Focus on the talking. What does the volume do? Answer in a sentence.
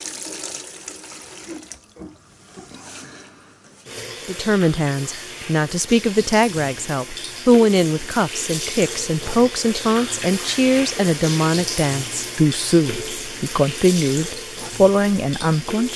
The loudness of the talking stays about the same.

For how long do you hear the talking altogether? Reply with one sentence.
You can hear the talking for 12 seconds altogether.